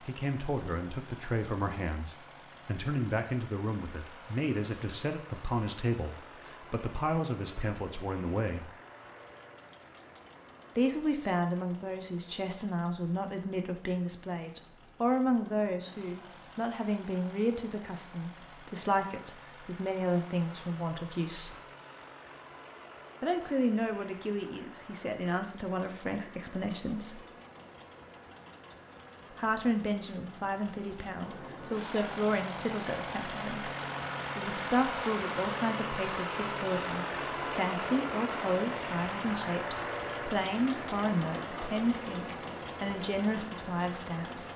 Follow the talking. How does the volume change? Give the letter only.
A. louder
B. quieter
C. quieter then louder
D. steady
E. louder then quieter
D.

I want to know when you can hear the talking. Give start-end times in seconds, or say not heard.
0.0-8.8, 10.8-21.6, 23.2-27.2, 29.3-33.7, 34.4-44.5.